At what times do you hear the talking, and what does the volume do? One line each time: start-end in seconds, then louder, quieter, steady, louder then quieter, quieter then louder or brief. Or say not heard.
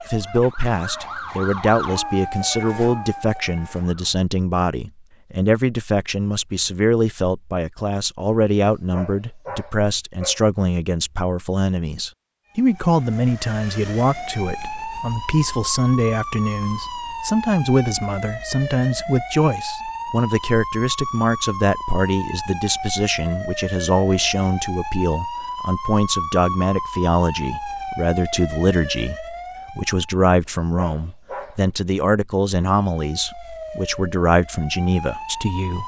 0.1-35.8 steady.